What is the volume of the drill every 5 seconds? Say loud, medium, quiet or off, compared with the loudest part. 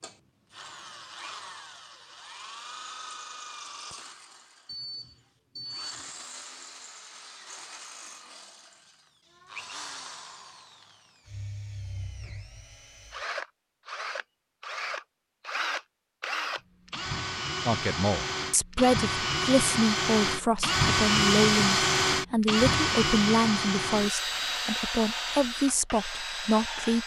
quiet, quiet, quiet, medium, loud, medium.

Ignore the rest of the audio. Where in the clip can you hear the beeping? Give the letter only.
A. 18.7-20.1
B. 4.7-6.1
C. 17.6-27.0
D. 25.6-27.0
B.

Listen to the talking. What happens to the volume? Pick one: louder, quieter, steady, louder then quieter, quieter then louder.
steady.